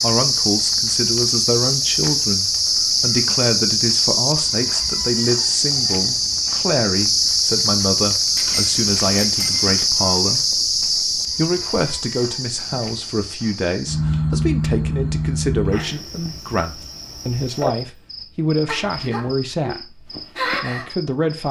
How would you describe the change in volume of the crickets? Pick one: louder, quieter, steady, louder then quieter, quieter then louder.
quieter.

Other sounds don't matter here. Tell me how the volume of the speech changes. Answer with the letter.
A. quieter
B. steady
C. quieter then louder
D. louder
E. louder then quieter
B.